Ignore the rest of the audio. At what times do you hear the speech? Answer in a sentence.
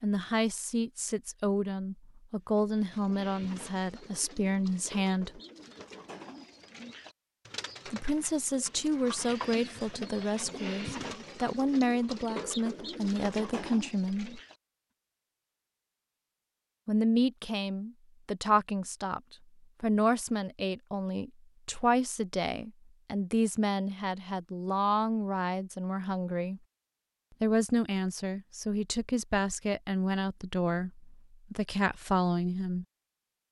The speech can be heard from 0.0 to 5.4 s, from 7.8 to 14.4 s, from 16.9 to 26.6 s and from 27.4 to 32.9 s.